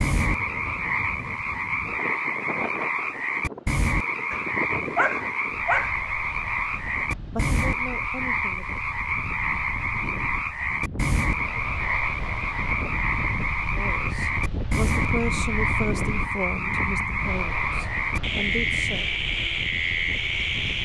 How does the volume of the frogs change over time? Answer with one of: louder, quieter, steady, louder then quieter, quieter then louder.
steady.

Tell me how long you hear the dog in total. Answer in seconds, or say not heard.
2 s.